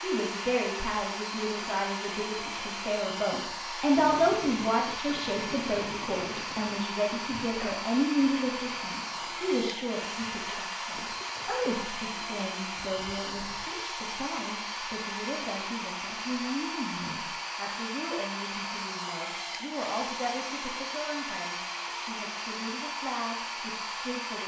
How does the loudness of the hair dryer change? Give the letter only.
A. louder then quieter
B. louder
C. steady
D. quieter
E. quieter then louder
C.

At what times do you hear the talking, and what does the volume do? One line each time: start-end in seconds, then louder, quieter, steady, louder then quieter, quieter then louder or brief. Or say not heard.
0.0-24.4 quieter.